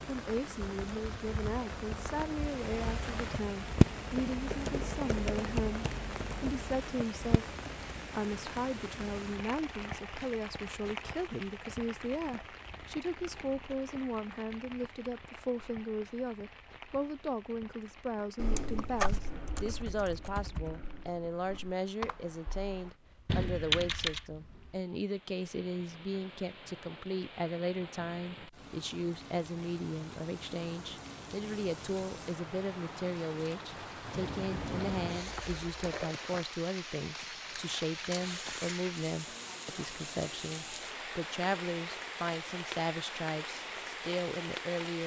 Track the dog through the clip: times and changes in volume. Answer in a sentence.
The dog can't be heard in this clip.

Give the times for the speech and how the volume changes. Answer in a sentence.
The speech can be heard from 0.1 to 45.0 s, at a steady volume.